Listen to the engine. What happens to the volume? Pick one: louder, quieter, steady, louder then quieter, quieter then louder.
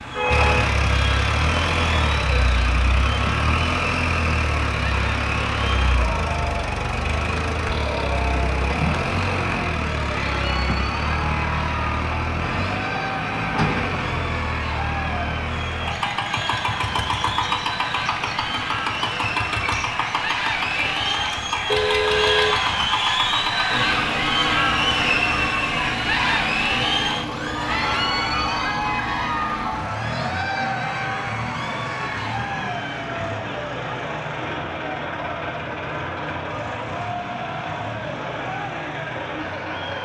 quieter.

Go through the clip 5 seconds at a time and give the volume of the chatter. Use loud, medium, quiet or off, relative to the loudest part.
medium, medium, medium, medium, loud, loud, medium, medium.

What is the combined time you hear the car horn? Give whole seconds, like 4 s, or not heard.
2 s.